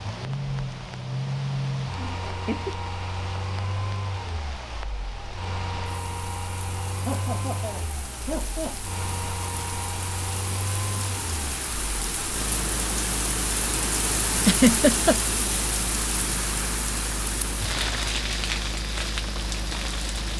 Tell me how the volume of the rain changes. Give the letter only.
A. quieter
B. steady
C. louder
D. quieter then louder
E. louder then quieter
C.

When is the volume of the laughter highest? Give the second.
15 s.